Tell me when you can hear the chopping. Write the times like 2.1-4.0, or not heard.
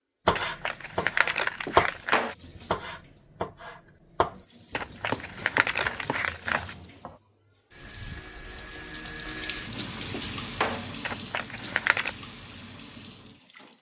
0.2-1.9, 2.5-7.2.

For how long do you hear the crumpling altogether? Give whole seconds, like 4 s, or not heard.
5 s.